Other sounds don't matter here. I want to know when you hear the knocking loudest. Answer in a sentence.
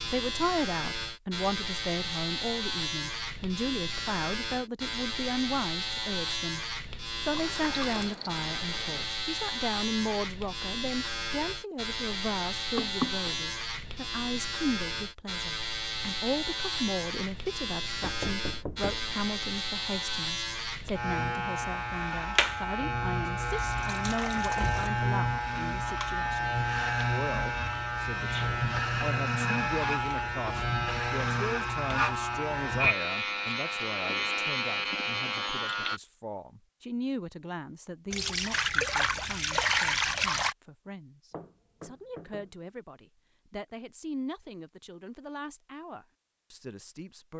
The volume of the knocking peaks at 13 seconds.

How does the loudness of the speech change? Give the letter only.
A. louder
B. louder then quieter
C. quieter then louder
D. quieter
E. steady
D.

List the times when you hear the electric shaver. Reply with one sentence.
The electric shaver can be heard from 0.0 to 36.0 s.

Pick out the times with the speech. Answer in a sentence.
You can hear the speech from 0.1 to 6.6 s and from 7.2 to 47.3 s.